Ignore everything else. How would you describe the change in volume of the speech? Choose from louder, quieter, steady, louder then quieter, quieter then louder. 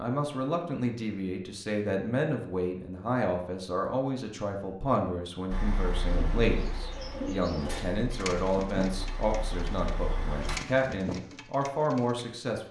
steady.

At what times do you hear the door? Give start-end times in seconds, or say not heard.
not heard.